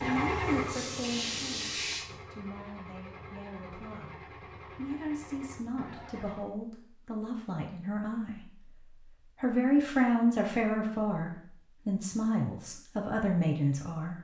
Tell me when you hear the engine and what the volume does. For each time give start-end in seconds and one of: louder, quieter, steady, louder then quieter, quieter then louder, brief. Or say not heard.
0.0-6.5 quieter.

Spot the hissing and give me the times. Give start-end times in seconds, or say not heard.
0.0-2.0.